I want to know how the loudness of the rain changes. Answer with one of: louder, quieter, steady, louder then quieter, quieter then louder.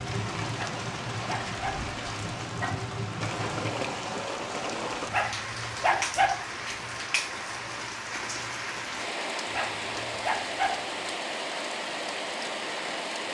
steady.